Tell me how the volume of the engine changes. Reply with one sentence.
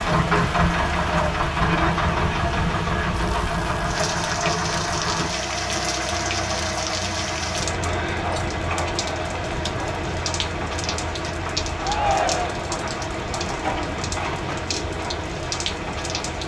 The loudness of the engine goes down.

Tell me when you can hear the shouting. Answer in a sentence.
You can hear the shouting from 11.8 to 12.7 s.